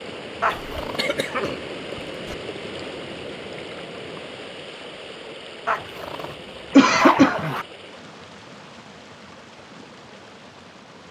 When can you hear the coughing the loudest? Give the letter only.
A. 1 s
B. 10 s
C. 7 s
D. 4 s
C.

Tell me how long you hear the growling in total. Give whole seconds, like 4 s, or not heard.
3 s.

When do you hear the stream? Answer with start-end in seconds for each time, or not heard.
0.0-11.0.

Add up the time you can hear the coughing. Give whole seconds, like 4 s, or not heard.
3 s.